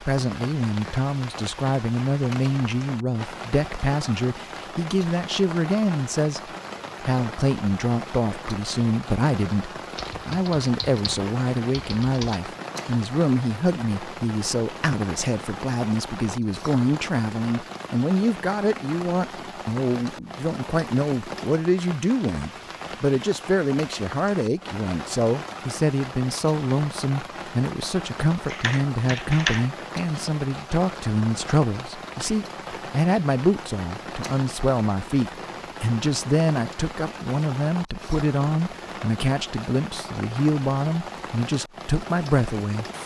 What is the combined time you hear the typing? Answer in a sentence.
You can hear the typing for 4 seconds altogether.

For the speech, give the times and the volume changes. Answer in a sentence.
You can hear the speech from 0.0 to 43.0 s, at a steady volume.